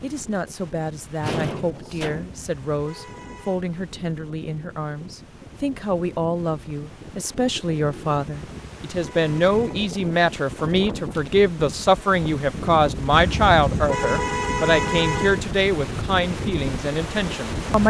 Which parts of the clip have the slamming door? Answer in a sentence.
The slamming door can be heard from 1.2 to 2.5 s.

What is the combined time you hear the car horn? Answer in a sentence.
You can hear the car horn for 5 seconds altogether.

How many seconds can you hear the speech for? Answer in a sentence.
You can hear the speech for 18 seconds altogether.